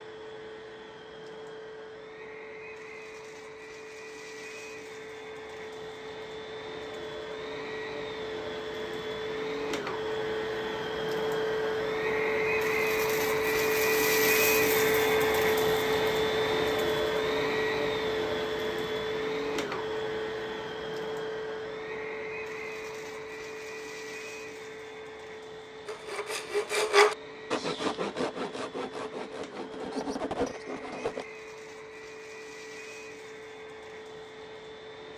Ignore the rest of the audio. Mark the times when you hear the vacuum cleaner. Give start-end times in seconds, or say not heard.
0.0-35.1.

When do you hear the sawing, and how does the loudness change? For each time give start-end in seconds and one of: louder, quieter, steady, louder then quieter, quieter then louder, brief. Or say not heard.
25.9-31.2 quieter then louder.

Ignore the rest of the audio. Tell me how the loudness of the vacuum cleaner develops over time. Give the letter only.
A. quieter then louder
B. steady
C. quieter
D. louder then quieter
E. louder
D.